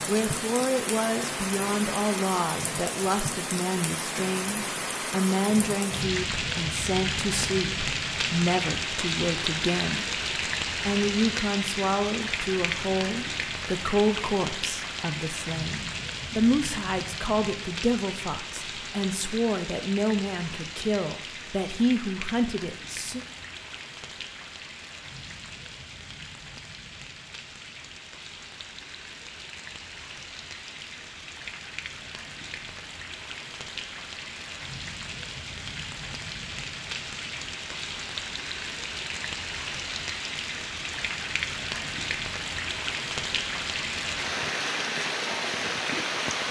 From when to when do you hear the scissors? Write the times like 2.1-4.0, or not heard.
not heard.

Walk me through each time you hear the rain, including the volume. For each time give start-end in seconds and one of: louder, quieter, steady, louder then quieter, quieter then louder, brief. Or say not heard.
0.0-46.4 quieter then louder.